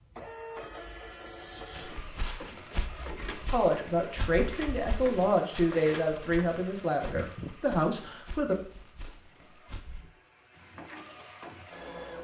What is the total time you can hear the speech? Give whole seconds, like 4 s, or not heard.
5 s.